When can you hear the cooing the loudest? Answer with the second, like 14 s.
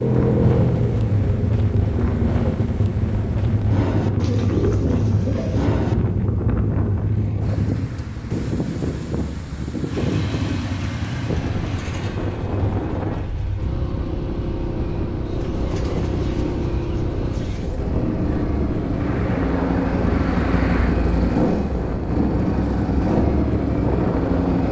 5 s.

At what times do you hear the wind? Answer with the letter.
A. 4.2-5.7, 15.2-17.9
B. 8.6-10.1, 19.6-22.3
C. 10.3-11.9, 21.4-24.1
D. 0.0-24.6
D.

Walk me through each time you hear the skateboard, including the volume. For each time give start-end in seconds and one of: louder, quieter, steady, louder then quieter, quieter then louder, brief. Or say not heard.
not heard.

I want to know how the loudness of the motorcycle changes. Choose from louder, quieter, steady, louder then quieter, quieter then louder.
quieter then louder.